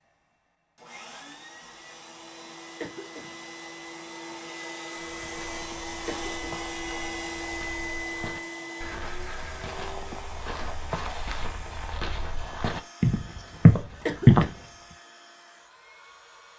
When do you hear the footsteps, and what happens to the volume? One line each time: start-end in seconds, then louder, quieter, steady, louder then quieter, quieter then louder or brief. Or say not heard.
5.0-14.5 louder.